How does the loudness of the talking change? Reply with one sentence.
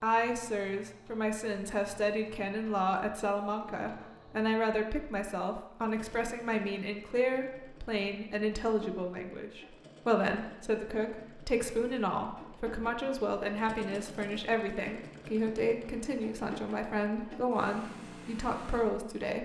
The loudness of the talking stays about the same.